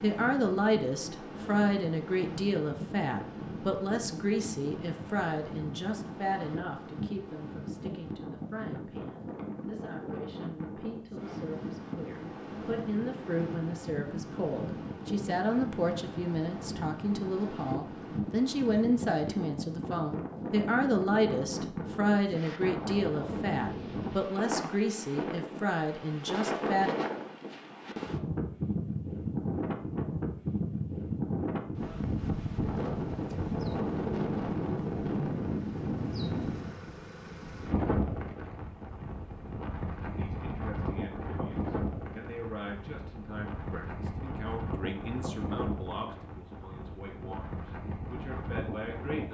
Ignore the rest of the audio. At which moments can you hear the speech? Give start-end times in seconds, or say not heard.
0.0-26.9, 40.0-49.2.